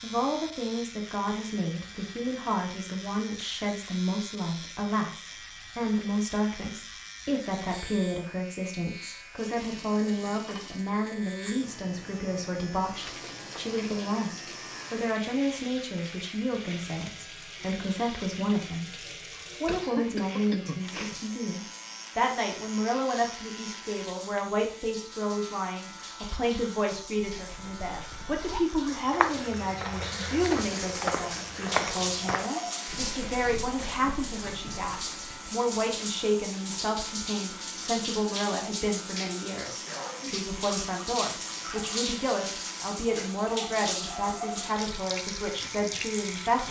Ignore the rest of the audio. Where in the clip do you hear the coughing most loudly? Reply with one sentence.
The loudest moment of the coughing is at 20 seconds.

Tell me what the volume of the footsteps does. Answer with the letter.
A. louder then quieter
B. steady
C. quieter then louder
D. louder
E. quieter
A.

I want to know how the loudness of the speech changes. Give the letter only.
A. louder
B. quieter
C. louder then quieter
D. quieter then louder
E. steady
E.